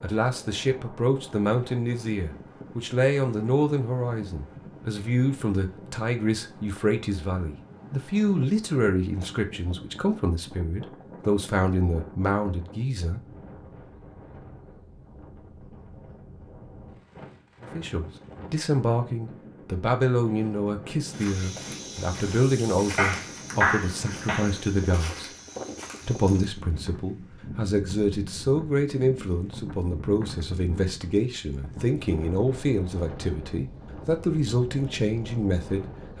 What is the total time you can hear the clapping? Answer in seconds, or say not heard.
2 s.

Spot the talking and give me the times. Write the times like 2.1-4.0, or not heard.
0.0-13.2, 17.6-25.3, 26.1-36.1.